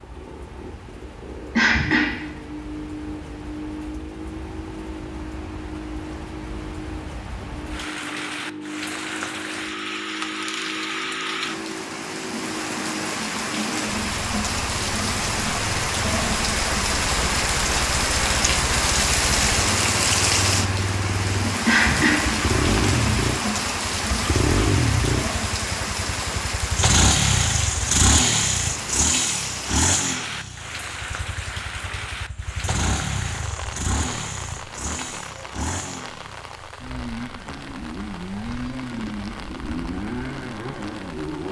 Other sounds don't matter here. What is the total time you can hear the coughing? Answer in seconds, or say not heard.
2 s.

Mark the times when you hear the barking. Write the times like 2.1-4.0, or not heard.
not heard.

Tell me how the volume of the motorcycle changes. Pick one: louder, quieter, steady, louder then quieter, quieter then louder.
louder then quieter.